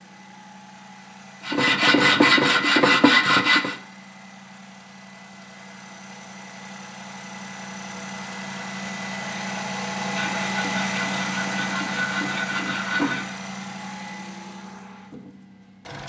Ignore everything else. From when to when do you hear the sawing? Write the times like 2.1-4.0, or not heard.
1.4-3.8, 10.0-13.3.